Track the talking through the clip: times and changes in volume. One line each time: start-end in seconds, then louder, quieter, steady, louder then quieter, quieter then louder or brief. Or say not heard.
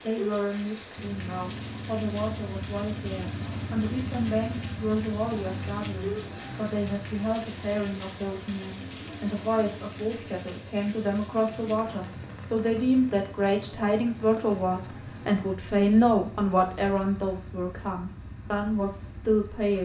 0.0-19.8 louder.